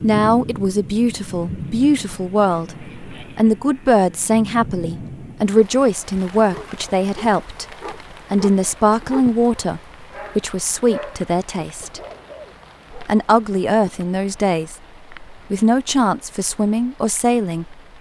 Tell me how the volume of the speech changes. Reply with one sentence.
The volume of the speech stays about the same.